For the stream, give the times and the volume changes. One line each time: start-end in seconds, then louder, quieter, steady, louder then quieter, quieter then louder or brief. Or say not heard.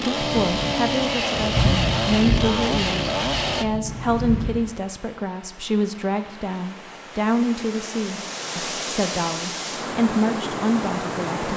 3.8-11.5 louder.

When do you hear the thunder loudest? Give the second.
2 s.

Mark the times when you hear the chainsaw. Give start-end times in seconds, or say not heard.
0.0-3.6.